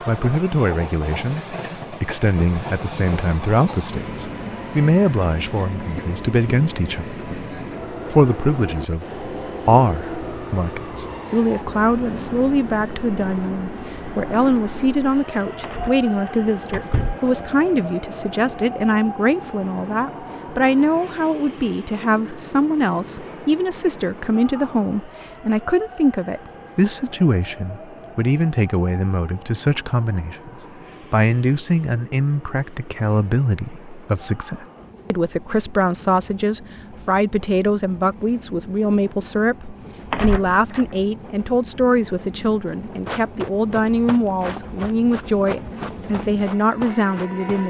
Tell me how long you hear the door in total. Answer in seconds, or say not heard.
2 s.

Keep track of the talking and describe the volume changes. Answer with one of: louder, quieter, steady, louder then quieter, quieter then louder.
steady.